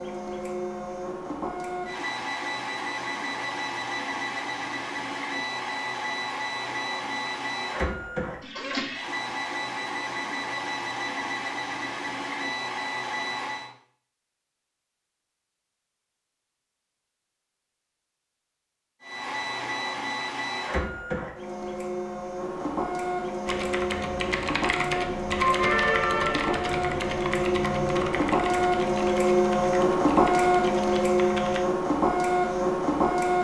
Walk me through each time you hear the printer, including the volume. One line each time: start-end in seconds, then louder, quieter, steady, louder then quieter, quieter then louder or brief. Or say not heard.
0.0-13.7 steady
19.0-33.3 louder.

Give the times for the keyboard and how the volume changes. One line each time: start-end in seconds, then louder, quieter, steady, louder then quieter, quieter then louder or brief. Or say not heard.
23.4-31.6 louder then quieter.